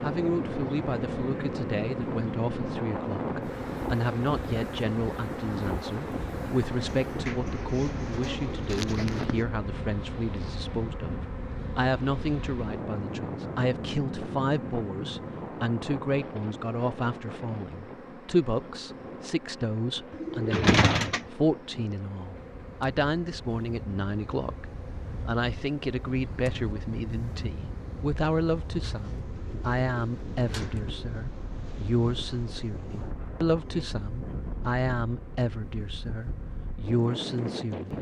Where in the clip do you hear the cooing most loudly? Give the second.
21 s.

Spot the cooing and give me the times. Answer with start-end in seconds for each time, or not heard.
6.8-9.4, 20.1-21.3, 28.9-31.2.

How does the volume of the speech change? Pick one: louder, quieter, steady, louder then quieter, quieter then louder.
steady.